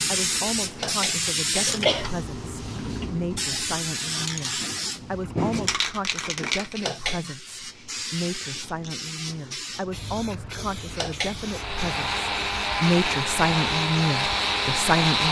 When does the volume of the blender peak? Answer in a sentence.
The loudest moment of the blender is at 15 seconds.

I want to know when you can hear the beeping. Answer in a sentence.
You can't hear the beeping here.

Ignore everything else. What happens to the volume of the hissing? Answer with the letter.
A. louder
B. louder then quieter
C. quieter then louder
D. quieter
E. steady
D.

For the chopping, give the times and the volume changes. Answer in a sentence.
You can't hear the chopping here.